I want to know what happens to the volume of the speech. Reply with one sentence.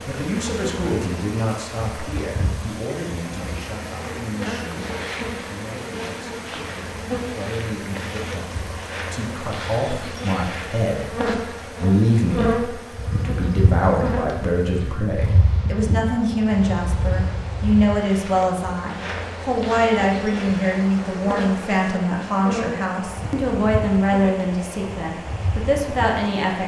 The loudness of the speech goes up.